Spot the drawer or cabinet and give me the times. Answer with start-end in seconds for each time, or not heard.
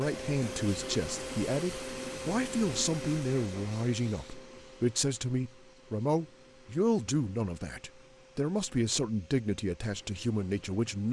not heard.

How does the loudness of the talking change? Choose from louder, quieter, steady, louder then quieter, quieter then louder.
steady.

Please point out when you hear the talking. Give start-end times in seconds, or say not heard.
0.0-11.0.